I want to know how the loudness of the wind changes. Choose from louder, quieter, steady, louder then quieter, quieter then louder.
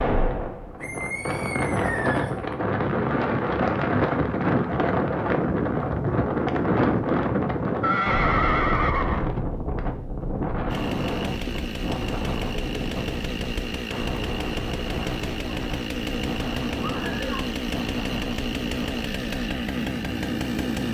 quieter.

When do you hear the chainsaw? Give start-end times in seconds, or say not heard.
10.7-20.8.